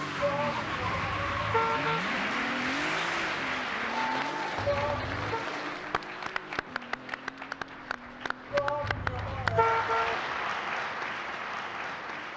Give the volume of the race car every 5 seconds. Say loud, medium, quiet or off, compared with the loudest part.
loud, medium, quiet.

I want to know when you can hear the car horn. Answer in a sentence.
You can hear the car horn from 1.1 to 2.0 s, from 4.5 to 5.5 s and from 8.8 to 10.2 s.